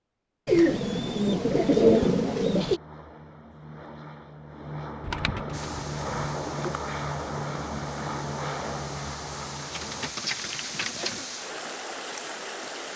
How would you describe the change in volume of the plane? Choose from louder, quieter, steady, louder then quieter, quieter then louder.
louder.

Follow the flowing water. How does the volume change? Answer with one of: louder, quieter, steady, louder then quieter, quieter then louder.
louder.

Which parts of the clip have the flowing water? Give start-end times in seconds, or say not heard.
5.5-12.9.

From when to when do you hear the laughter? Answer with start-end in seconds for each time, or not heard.
not heard.